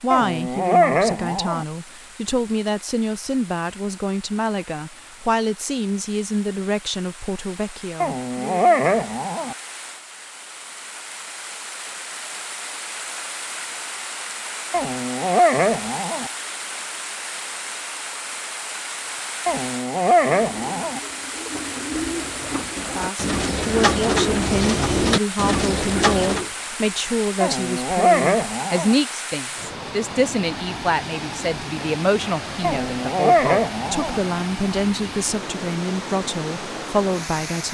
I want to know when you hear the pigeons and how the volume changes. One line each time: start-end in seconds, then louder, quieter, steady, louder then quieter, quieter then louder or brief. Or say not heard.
20.1-26.5 louder.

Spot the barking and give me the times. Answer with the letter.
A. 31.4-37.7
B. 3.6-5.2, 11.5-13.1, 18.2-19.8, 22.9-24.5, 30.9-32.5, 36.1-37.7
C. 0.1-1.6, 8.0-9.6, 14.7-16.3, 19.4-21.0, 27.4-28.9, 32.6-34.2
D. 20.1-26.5
C.